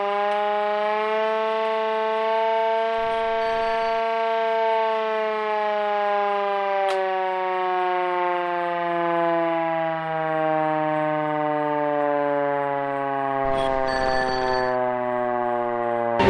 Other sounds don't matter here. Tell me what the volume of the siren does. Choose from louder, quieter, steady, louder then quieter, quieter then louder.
steady.